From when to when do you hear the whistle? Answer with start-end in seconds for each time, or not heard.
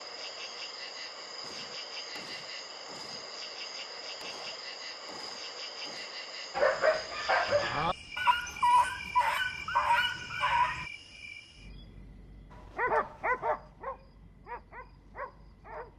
not heard.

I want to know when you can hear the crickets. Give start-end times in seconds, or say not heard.
0.0-15.9.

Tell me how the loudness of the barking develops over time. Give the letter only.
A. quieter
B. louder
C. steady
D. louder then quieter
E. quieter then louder
A.